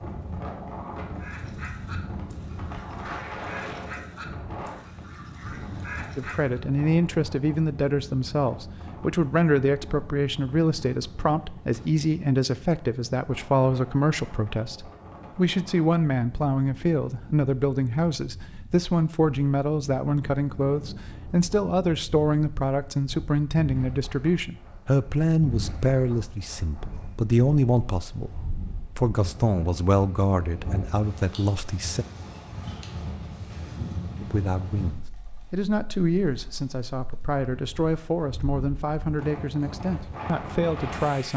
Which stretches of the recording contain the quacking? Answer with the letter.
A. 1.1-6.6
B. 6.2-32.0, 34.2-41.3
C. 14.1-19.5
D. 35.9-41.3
A.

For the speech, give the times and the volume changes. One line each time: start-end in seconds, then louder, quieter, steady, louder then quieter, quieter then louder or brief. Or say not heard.
6.2-32.0 steady
34.2-41.3 steady.